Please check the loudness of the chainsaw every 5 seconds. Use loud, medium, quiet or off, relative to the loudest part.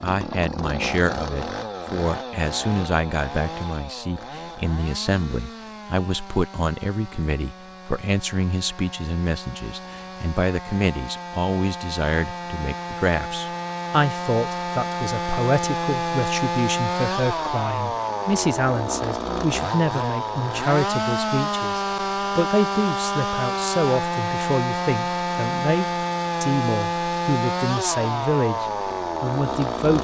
medium, quiet, medium, loud, loud, loud.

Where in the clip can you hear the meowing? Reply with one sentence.
You can't hear the meowing here.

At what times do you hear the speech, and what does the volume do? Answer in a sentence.
You can hear the speech from 0.0 to 29.9 s, at a steady volume.